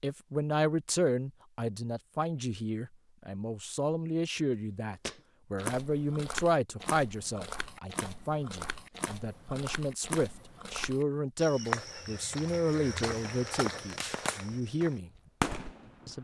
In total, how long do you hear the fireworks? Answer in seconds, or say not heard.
2 s.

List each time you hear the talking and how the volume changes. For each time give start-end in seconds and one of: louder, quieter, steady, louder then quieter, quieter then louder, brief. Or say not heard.
0.0-15.1 steady.